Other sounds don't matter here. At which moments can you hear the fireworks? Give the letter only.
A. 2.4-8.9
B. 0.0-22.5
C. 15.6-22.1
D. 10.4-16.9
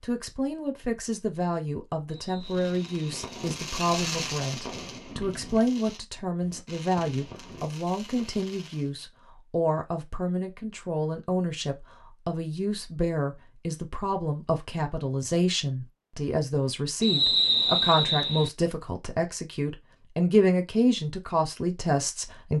A.